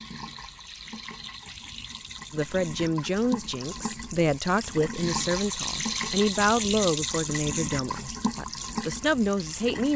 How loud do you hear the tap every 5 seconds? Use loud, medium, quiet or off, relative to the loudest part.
medium, loud.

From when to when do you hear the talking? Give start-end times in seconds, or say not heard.
2.3-9.9.